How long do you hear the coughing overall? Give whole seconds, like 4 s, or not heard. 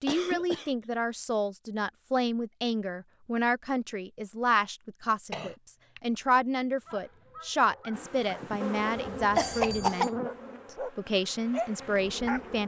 2 s.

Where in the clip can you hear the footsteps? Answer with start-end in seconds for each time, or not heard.
not heard.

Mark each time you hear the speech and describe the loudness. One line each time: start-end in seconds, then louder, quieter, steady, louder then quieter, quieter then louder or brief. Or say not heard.
0.0-10.1 steady
10.8-12.6 brief.